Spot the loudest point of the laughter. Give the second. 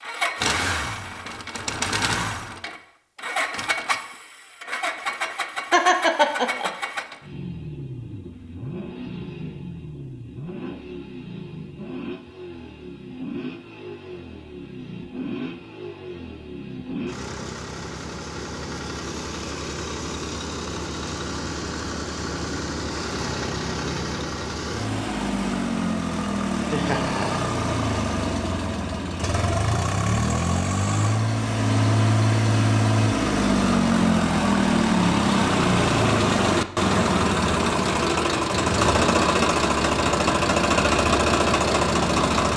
6 s.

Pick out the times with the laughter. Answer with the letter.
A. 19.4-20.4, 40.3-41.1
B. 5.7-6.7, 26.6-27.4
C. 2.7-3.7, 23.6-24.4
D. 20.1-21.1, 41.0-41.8
B.